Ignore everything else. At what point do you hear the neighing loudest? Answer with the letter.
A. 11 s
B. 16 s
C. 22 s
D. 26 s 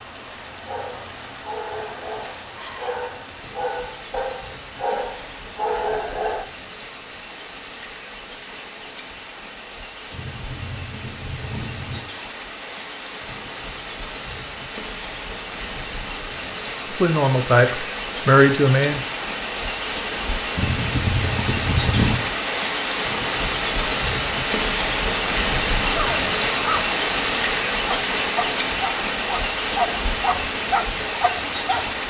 C.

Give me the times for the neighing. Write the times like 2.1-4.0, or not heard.
10.1-12.0, 20.6-22.2.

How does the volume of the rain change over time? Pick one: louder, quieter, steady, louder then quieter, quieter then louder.
louder.